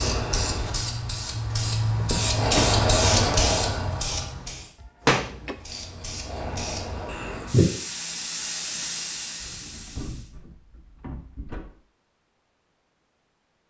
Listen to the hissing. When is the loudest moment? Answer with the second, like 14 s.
3 s.